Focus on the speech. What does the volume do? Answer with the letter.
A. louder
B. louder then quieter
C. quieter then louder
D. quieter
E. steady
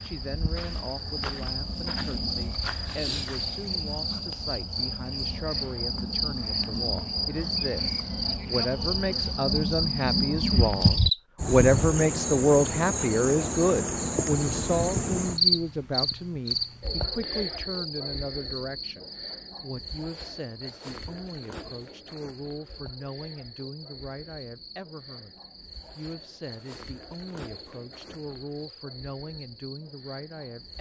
B.